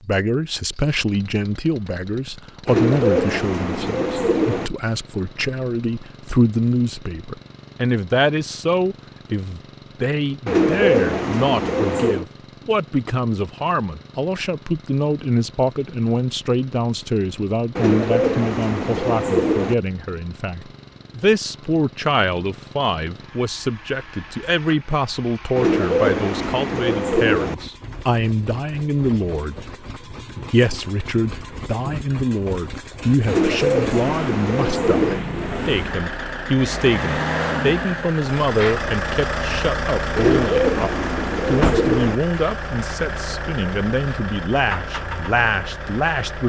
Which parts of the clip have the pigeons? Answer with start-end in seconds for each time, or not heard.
2.6-4.7, 10.4-12.2, 17.8-19.8, 25.6-27.6, 33.2-35.2, 40.1-42.1.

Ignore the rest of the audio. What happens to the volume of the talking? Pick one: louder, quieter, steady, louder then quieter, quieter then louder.
steady.